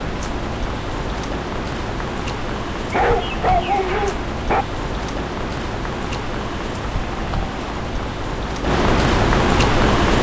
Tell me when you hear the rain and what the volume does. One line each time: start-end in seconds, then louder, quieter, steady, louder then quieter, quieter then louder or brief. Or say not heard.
0.0-10.1 louder.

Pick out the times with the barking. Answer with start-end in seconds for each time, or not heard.
2.9-4.7.